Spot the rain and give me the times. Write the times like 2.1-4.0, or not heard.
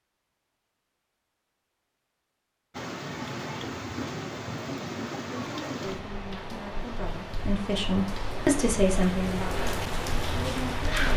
2.7-11.1.